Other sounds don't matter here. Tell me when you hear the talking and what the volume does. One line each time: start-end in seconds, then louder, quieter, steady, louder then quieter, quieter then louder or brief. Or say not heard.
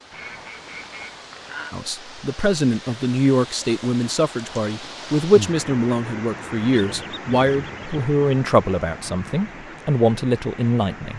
1.7-11.1 steady.